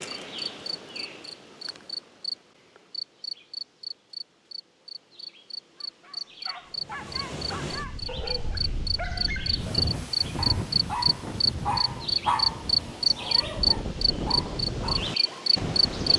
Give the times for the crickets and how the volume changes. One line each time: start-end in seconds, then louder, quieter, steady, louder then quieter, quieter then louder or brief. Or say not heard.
0.0-16.1 louder.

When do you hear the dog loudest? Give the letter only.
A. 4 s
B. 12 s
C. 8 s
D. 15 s
B.